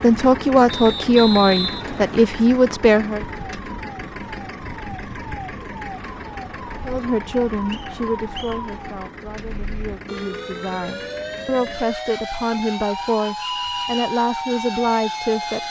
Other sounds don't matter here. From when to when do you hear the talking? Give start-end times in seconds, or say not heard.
0.0-3.2, 6.8-15.6.